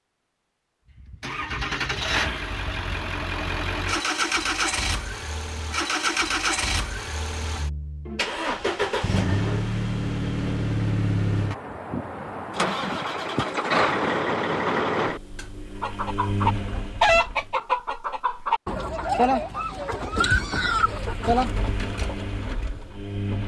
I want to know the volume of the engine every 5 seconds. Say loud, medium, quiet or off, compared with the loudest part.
loud, loud, loud, medium, medium.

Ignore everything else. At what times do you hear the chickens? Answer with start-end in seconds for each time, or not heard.
15.8-21.6.